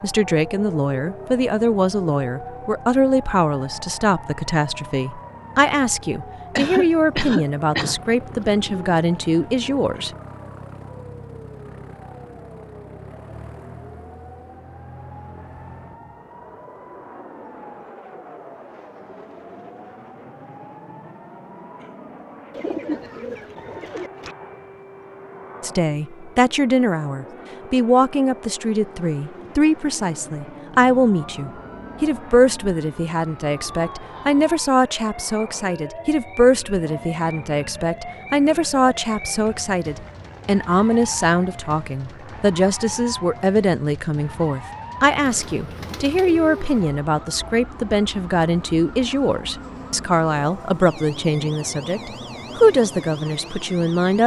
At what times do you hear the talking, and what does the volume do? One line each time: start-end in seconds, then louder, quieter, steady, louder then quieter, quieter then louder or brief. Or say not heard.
0.0-10.1 steady
25.6-54.2 steady.